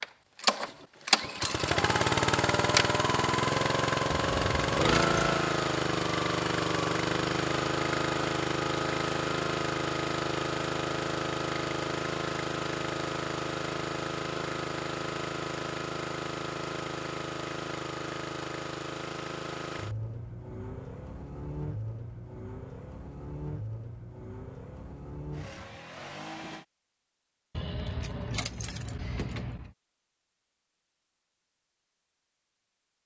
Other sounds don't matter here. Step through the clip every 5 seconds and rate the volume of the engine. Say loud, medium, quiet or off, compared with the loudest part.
loud, loud, medium, medium, quiet, quiet, off.